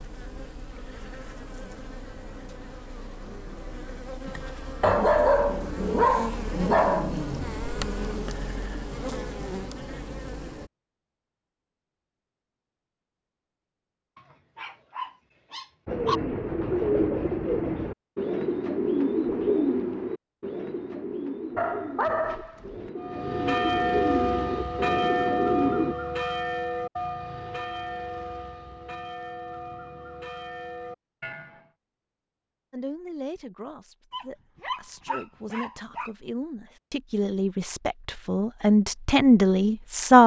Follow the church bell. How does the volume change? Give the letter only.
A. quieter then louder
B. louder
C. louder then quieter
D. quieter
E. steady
D.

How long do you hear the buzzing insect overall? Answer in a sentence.
You can hear the buzzing insect for 11 seconds altogether.